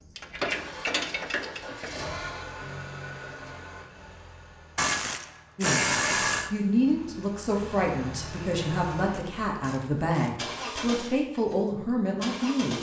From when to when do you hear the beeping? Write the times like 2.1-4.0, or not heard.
not heard.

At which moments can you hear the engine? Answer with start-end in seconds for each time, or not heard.
0.0-12.7.